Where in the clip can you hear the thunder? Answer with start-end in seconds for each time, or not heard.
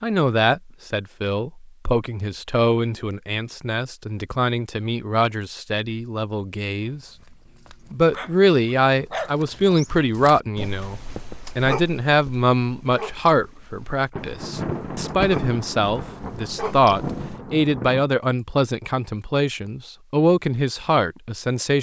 14.1-18.1.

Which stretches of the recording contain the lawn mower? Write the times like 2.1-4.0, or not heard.
not heard.